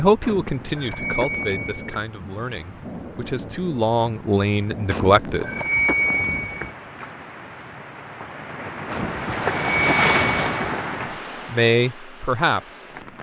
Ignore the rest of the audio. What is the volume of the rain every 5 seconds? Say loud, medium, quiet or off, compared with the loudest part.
medium, loud, loud.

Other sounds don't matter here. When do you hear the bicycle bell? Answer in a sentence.
The bicycle bell can be heard from 0.2 to 2.0 s, from 4.8 to 6.7 s and from 8.8 to 10.6 s.